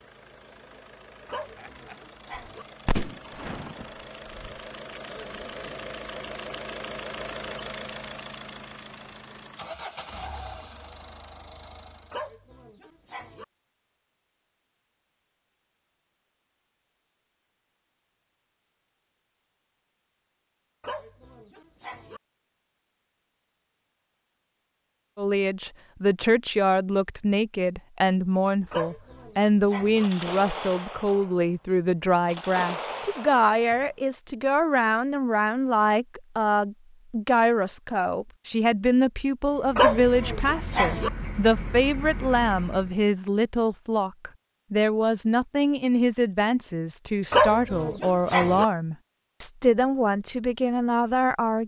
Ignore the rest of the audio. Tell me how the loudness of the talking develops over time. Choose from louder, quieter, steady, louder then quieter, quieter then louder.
steady.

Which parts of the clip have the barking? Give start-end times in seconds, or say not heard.
1.2-2.6, 12.1-13.4, 20.8-22.2, 28.7-30.1, 39.8-41.1, 47.3-48.6.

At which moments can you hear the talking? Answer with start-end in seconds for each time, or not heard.
25.1-51.6.